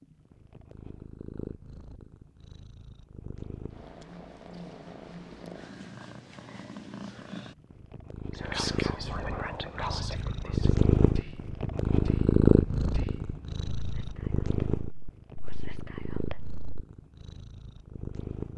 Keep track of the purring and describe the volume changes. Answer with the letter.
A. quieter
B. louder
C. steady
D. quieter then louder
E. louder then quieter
E.